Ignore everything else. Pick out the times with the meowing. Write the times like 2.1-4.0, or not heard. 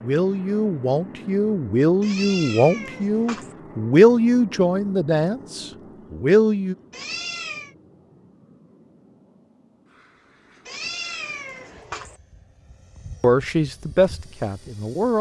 2.0-3.5, 6.9-7.7, 10.7-12.2.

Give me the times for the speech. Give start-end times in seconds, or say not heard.
0.0-6.8, 13.2-15.1.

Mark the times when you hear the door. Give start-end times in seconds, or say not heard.
not heard.